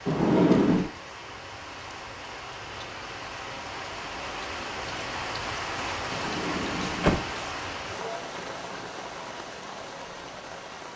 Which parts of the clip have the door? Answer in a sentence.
The door can be heard from 0.1 to 0.9 s and from 6.1 to 7.3 s.